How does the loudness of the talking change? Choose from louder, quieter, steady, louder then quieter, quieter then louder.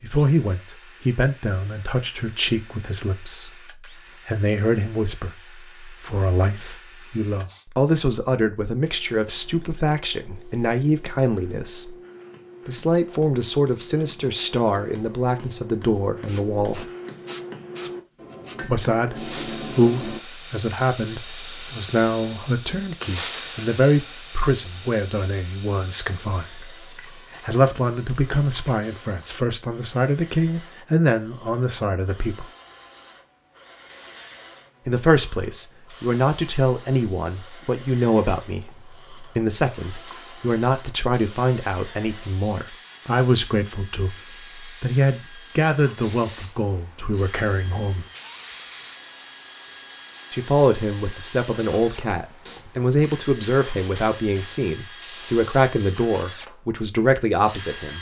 steady.